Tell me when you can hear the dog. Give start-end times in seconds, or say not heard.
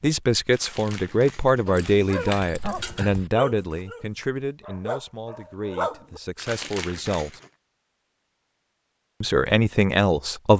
1.6-6.2.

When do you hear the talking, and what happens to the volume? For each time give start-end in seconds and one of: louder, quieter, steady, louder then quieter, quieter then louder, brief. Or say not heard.
0.0-7.4 quieter
9.2-10.5 brief.